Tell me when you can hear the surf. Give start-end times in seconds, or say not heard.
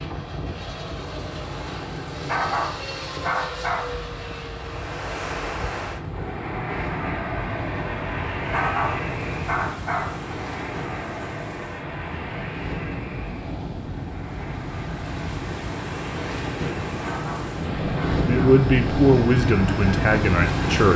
4.5-20.9.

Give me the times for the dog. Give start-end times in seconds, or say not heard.
2.2-4.0, 8.5-10.2, 17.0-18.7.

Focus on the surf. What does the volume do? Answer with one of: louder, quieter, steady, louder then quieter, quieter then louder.
louder.